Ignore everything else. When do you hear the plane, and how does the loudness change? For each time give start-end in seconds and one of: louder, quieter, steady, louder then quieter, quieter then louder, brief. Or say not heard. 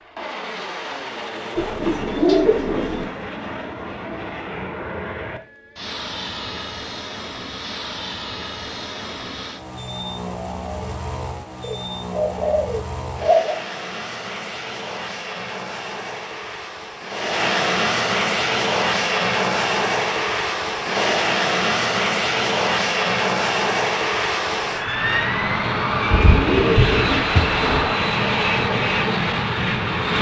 0.0-30.1 louder.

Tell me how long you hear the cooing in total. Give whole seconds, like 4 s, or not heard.
5 s.